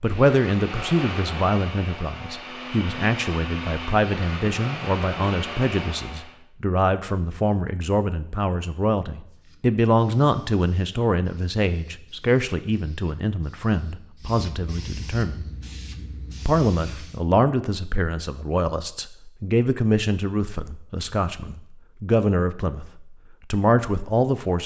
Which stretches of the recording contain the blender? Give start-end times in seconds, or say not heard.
0.0-6.3.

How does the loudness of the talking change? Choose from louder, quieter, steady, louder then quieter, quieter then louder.
steady.